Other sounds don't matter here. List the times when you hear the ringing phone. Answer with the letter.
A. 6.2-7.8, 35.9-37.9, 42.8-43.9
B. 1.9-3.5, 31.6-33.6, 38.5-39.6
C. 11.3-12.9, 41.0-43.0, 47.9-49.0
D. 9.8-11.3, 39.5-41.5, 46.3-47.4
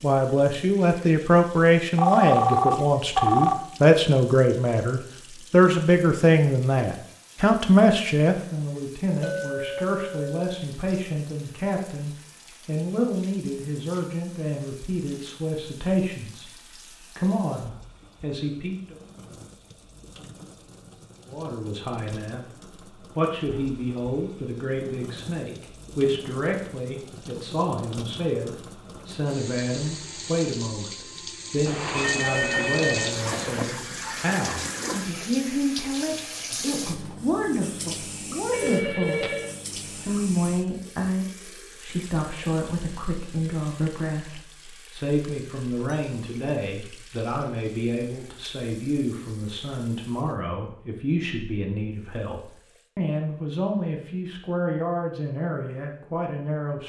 B.